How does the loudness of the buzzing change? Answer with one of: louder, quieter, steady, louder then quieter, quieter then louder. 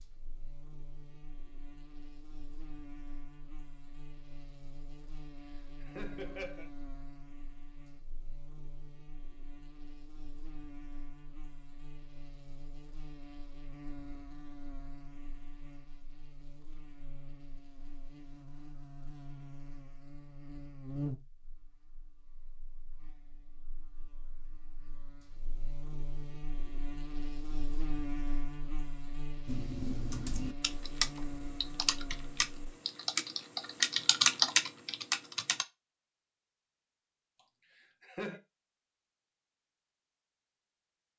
louder.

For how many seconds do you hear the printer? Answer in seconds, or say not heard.
not heard.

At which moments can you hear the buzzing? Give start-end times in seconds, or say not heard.
0.0-32.7.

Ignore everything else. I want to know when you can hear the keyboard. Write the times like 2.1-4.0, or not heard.
29.4-35.6.